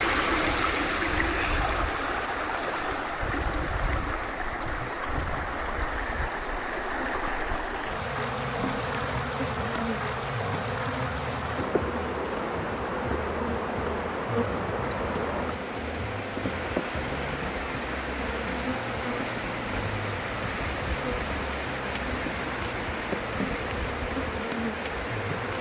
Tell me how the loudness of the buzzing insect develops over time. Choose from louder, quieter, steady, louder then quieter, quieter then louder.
louder.